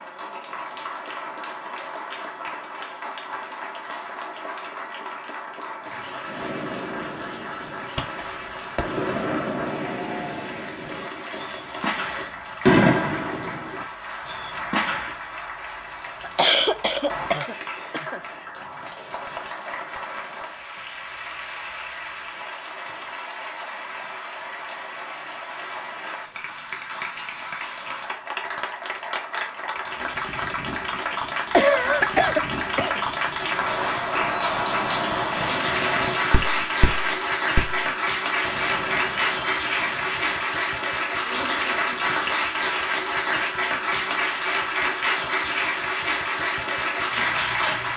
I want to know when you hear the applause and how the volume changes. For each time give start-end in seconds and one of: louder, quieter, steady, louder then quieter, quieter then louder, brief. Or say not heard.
0.0-47.9 louder.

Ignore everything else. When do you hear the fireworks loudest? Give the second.
13 s.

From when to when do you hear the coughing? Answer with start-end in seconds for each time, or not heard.
16.2-18.2, 31.5-33.0.